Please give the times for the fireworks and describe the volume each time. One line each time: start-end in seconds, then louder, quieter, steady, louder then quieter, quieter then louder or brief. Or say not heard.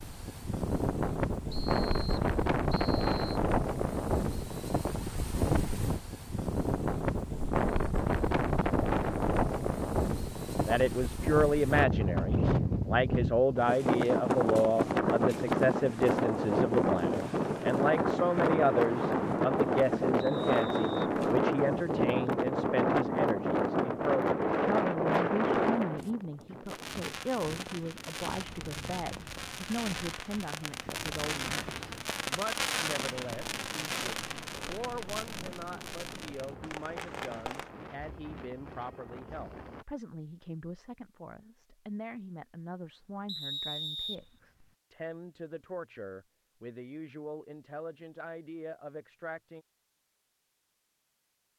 26.6-37.7 louder then quieter.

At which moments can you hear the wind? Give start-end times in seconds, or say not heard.
0.0-39.9.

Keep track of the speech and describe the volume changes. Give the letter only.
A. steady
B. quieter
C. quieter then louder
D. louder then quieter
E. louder
B.